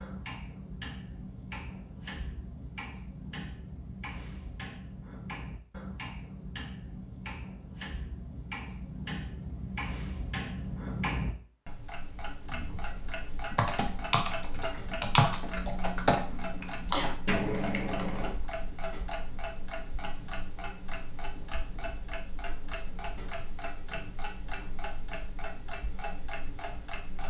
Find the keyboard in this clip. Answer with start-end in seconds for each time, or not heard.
13.5-18.4.